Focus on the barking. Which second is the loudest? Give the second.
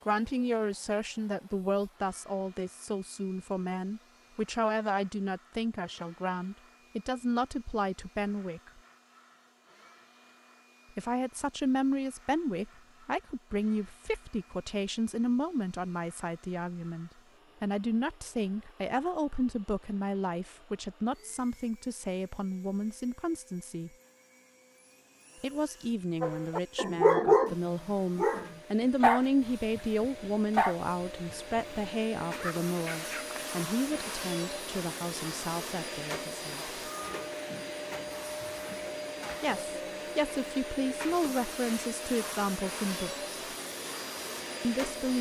27 s.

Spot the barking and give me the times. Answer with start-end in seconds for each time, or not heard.
26.2-27.6, 28.1-33.5.